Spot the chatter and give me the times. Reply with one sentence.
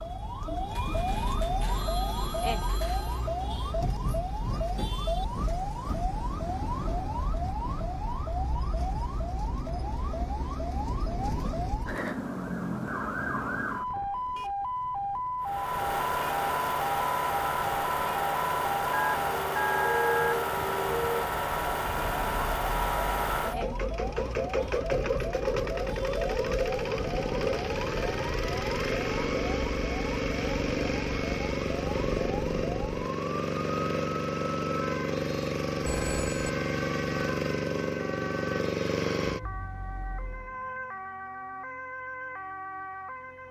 You can't hear the chatter here.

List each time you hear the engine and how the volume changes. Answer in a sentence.
You can hear the engine from 15.4 to 40.5 s, at a steady volume.